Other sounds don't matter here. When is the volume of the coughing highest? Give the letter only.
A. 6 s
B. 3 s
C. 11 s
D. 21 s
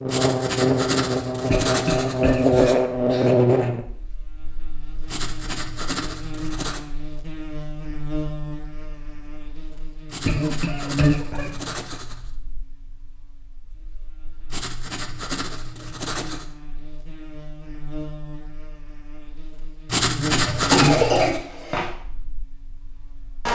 D.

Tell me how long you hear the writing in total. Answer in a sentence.
The writing can be heard for 10 seconds in total.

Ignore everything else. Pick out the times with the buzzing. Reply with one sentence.
You can hear the buzzing from 0.0 to 23.5 s.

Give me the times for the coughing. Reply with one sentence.
You can hear the coughing from 1.5 to 3.3 s, from 10.2 to 11.8 s and from 20.4 to 21.9 s.